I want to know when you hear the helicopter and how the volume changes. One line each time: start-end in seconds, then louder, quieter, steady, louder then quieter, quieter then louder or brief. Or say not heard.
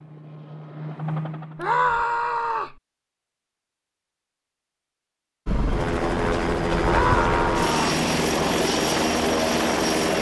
0.0-2.0 brief
5.5-10.1 steady.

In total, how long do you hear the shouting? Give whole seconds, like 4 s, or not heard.
2 s.